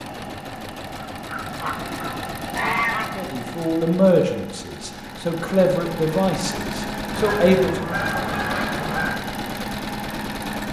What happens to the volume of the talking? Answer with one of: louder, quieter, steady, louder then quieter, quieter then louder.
quieter then louder.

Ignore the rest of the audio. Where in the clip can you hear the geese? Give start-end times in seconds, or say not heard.
1.0-3.1, 7.2-9.2.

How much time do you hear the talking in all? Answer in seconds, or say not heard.
5 s.